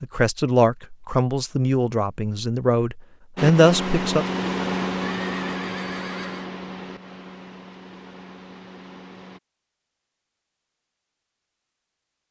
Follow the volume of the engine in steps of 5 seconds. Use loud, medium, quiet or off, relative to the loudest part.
loud, medium, off.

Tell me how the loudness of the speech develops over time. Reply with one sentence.
The volume of the speech goes down, then up.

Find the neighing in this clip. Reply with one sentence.
The neighing can be heard from 5.0 to 6.5 s.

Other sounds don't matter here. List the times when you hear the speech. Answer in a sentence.
The speech can be heard from 0.0 to 4.2 s.